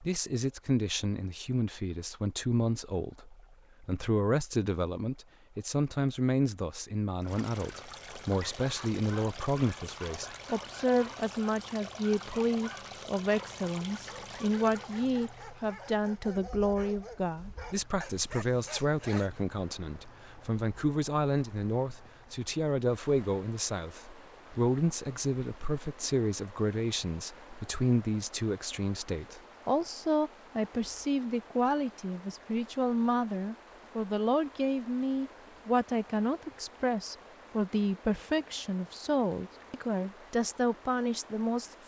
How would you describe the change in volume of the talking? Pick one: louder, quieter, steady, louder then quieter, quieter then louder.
steady.